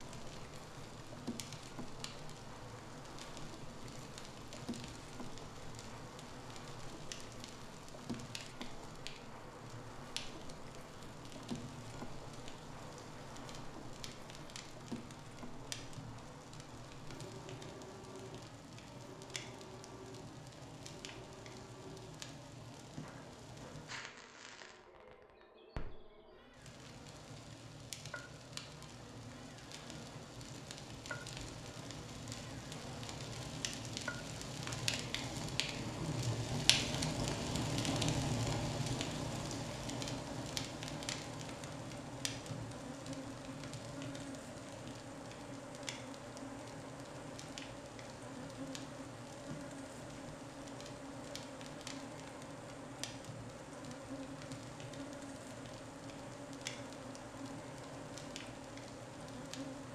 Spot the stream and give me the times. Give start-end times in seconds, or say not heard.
not heard.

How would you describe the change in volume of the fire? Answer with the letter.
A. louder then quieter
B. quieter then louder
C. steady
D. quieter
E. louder
A.